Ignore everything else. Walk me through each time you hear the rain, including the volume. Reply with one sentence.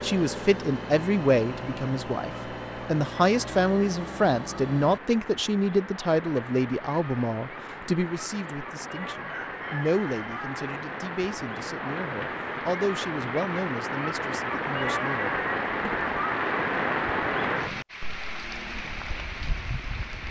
The rain can be heard from 0.2 to 20.2 s, getting louder.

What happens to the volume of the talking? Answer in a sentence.
The loudness of the talking goes down.